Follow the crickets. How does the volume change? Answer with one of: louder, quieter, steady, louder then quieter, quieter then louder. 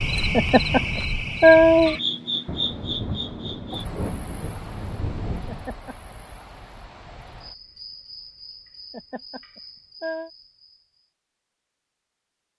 quieter.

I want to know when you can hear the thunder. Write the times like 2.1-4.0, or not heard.
2.5-5.7.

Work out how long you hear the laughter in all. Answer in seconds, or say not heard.
4 s.